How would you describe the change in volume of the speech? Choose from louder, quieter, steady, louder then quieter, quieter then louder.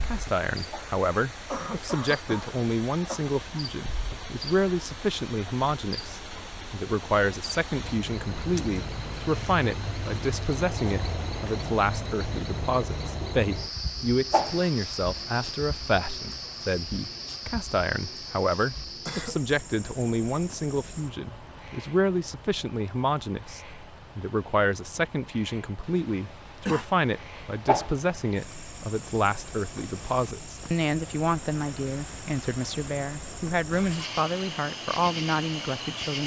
steady.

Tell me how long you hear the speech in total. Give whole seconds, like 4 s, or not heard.
36 s.